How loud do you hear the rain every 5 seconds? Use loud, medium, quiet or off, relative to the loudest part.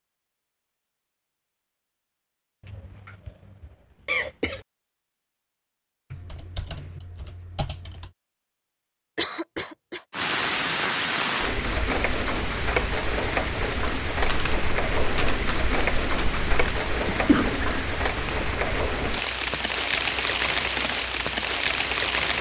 off, off, loud, loud, loud.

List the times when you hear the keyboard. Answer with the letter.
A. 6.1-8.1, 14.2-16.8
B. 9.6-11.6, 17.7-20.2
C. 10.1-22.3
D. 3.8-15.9
A.